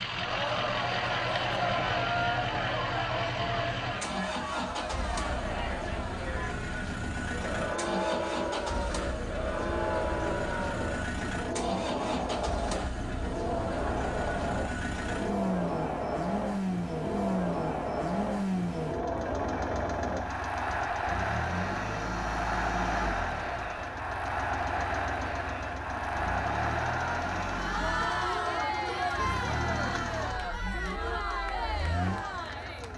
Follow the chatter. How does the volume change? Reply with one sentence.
The volume of the chatter stays about the same.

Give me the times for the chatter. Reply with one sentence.
You can hear the chatter from 0.0 to 32.9 s.